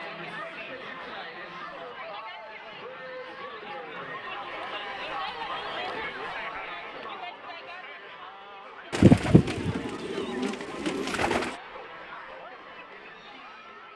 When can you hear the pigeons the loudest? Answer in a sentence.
The volume of the pigeons peaks at 9 seconds.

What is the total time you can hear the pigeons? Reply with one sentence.
You can hear the pigeons for 3 seconds altogether.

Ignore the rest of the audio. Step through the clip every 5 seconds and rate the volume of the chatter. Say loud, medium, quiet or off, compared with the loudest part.
loud, loud, medium.